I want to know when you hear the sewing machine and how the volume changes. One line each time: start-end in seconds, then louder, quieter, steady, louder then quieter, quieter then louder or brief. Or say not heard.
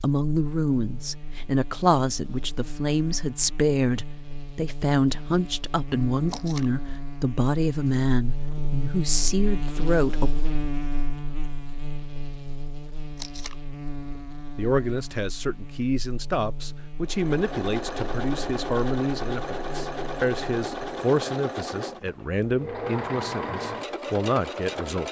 17.0-25.0 steady.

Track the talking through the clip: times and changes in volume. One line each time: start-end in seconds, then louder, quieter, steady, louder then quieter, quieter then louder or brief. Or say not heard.
0.0-10.3 steady
14.6-25.0 steady.